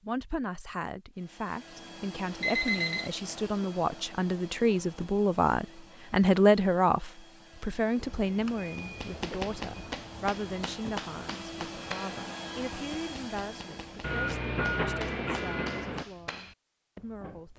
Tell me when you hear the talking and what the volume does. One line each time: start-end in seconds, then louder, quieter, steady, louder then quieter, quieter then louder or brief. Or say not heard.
0.0-17.5 louder then quieter.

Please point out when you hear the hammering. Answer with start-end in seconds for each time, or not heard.
8.8-17.5.